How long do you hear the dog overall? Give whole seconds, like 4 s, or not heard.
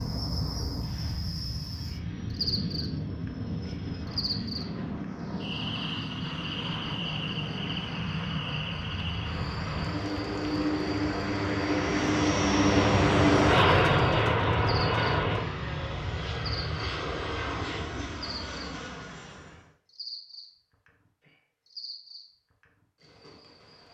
not heard.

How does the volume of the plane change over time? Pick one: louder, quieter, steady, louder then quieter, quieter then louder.
louder then quieter.